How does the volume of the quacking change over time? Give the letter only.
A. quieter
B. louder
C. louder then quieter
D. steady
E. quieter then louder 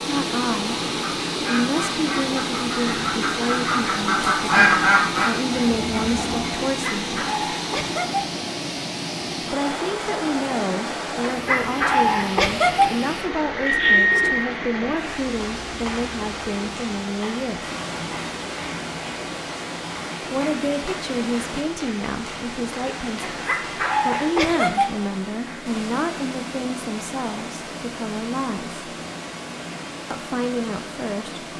C.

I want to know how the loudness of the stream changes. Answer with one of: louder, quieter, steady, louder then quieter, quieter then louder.
quieter.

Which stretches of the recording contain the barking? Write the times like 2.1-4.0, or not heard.
6.7-8.2, 11.2-12.9, 23.2-24.9.